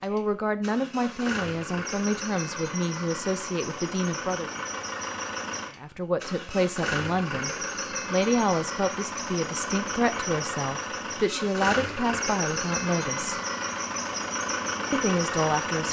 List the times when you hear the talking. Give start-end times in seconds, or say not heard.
0.0-4.5, 5.8-13.3, 14.9-15.8.